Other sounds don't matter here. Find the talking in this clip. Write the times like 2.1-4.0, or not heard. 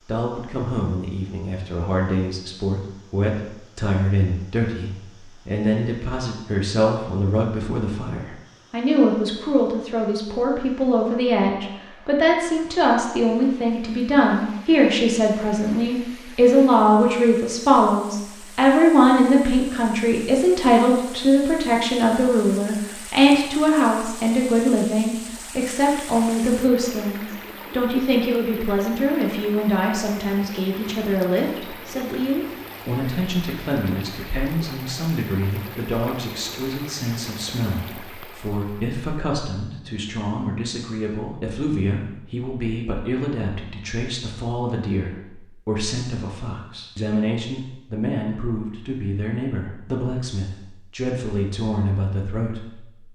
0.1-53.1.